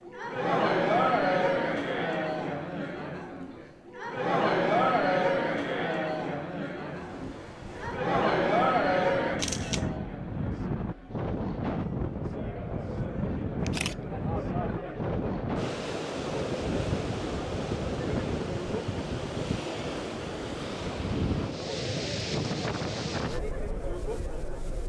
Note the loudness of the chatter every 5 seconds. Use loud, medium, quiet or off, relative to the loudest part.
loud, loud, quiet, medium, medium.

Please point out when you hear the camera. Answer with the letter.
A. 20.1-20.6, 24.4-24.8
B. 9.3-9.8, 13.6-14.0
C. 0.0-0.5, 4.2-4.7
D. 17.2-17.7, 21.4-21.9
B.